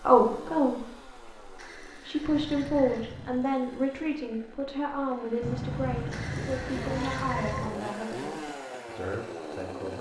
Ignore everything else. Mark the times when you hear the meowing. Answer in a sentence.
The meowing can be heard from 2.2 to 3.5 s and from 5.4 to 7.8 s.